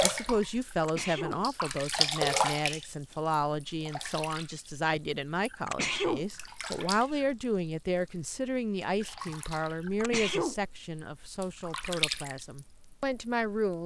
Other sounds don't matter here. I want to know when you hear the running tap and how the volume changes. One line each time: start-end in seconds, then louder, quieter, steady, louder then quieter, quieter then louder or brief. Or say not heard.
0.0-13.8 quieter then louder.